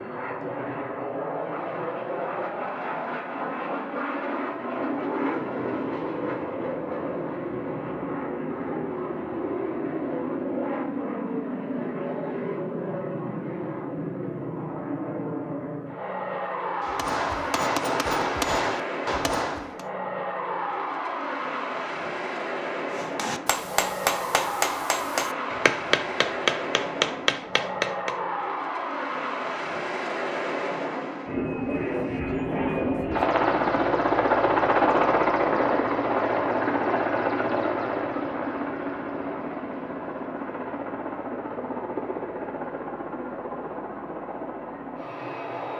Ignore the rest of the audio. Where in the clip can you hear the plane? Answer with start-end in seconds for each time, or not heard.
0.0-45.7.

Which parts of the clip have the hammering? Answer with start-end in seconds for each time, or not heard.
16.8-19.9, 22.9-28.1.